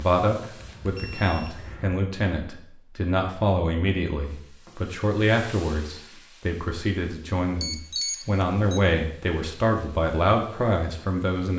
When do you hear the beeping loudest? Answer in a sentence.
The volume of the beeping peaks at 8 seconds.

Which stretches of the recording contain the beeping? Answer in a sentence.
You can hear the beeping from 0.6 to 1.9 s and from 7.6 to 8.8 s.